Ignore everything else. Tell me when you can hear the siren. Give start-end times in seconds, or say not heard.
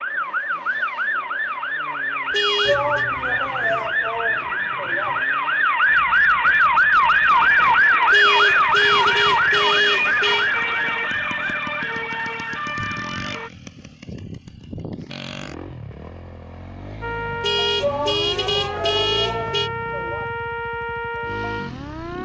0.0-13.5, 17.0-22.1.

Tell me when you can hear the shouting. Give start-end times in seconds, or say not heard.
2.6-5.2, 17.8-20.3.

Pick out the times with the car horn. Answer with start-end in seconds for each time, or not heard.
2.3-3.0, 8.1-10.5, 17.4-19.7.